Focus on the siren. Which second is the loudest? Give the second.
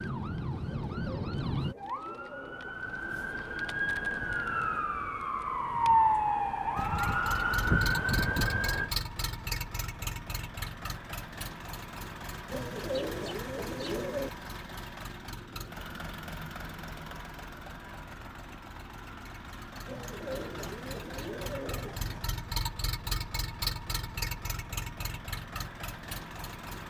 6 s.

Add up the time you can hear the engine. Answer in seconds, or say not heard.
20 s.